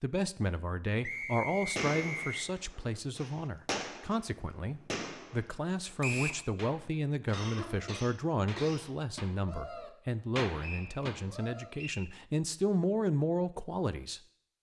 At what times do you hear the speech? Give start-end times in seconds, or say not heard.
0.0-14.2.